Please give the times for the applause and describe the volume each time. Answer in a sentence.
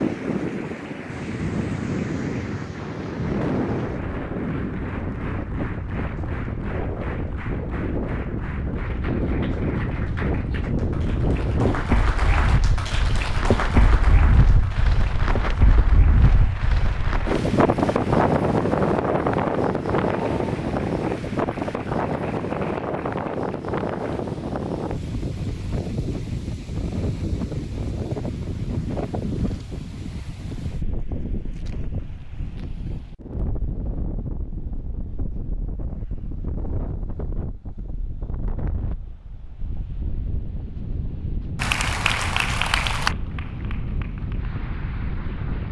The applause can be heard from 0.0 to 24.2 s, getting louder then quieter; and from 41.5 to 45.6 s, getting quieter.